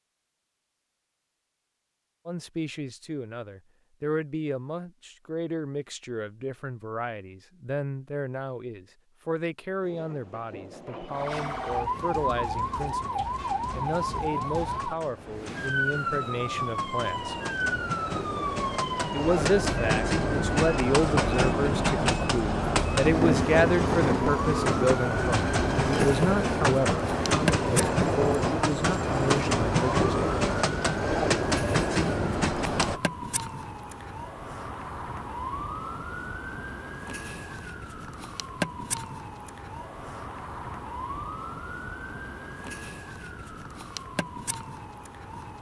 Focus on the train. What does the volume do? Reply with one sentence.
The volume of the train goes up.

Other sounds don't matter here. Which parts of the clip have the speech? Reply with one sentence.
You can hear the speech from 2.2 to 17.4 s and from 19.1 to 30.1 s.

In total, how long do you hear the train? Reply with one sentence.
The train can be heard for 23 seconds in total.